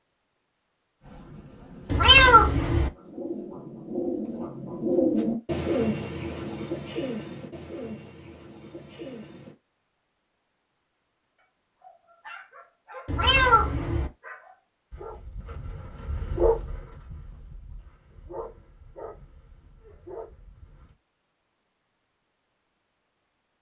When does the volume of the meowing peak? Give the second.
2 s.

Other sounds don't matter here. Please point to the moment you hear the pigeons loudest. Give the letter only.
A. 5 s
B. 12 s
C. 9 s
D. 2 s
A.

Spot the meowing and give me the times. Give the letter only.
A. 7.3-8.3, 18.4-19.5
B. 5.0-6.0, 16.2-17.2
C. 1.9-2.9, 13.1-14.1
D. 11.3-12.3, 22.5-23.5
C.